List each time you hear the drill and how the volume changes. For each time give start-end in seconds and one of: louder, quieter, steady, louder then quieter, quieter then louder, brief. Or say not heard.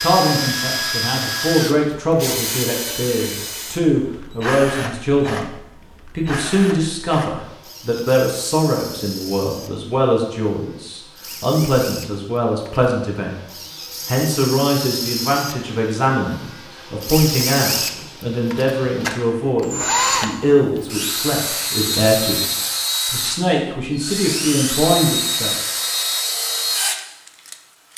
0.0-27.9 quieter then louder.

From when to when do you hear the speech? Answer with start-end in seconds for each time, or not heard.
0.0-5.5, 6.2-22.4, 23.1-25.6.